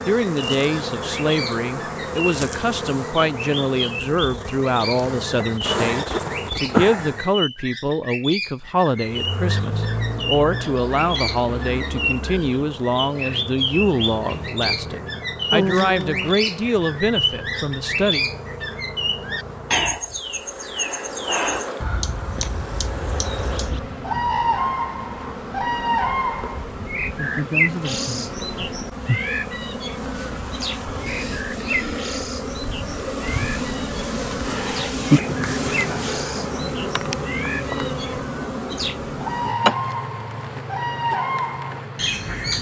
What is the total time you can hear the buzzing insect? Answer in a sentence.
You can hear the buzzing insect for 41 seconds altogether.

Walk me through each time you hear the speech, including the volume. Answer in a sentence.
The speech can be heard from 0.1 to 18.2 s, at a steady volume.